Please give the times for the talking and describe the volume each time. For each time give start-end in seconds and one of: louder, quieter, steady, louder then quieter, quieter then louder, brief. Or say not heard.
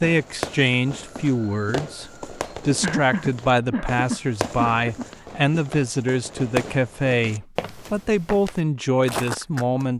0.0-9.9 steady.